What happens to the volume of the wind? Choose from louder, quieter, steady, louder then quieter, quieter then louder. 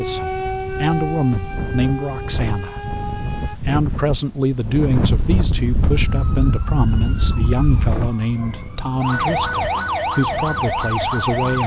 louder then quieter.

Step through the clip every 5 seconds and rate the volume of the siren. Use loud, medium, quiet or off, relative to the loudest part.
medium, medium, loud.